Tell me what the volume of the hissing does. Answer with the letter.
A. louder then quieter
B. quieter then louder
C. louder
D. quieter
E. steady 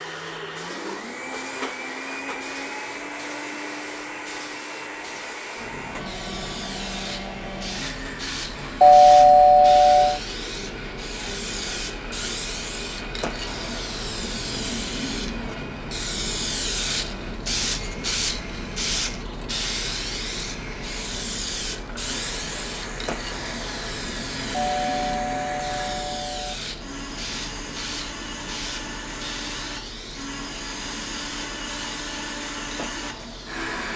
A.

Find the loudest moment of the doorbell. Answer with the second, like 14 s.
9 s.